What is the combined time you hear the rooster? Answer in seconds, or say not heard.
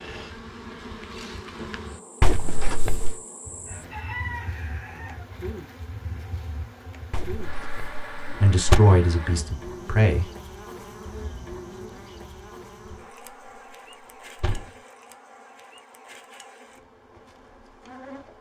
2 s.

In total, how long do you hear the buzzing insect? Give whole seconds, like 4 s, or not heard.
18 s.